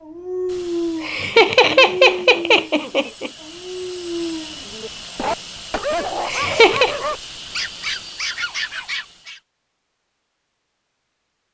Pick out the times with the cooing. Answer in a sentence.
You can't hear the cooing here.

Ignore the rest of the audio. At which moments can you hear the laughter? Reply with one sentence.
The laughter can be heard from 1.0 to 3.3 s and from 6.2 to 7.0 s.